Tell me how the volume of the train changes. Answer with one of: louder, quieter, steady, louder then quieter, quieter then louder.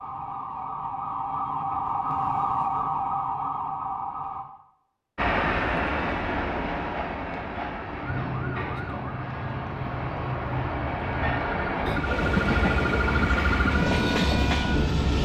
quieter then louder.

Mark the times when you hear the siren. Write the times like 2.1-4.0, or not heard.
0.0-4.5, 8.0-15.1.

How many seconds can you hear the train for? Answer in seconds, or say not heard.
10 s.